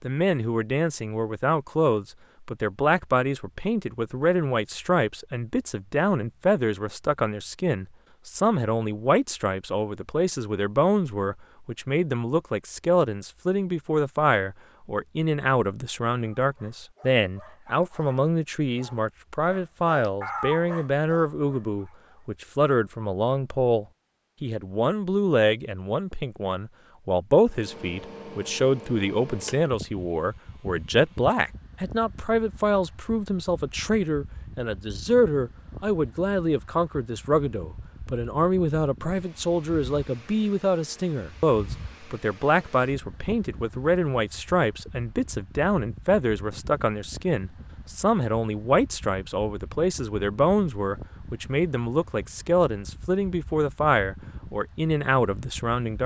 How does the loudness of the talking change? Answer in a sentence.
The volume of the talking stays about the same.